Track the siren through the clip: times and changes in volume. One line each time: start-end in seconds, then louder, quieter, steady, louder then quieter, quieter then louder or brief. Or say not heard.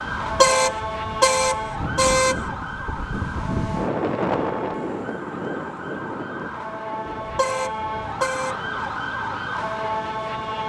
0.0-10.6 quieter then louder.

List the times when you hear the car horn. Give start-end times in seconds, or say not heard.
0.1-2.4, 7.2-8.6.